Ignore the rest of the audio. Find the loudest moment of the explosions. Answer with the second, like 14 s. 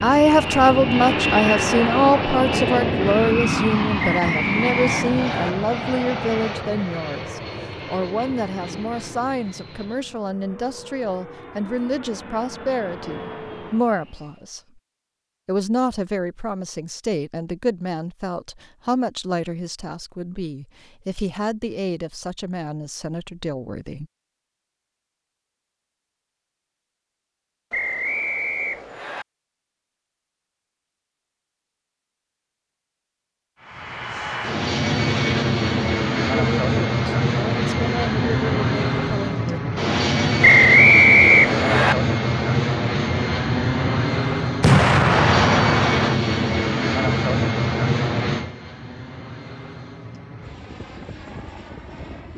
45 s.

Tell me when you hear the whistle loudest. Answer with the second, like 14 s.
41 s.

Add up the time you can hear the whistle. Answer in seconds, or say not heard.
5 s.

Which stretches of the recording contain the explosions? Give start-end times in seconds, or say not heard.
44.6-46.1.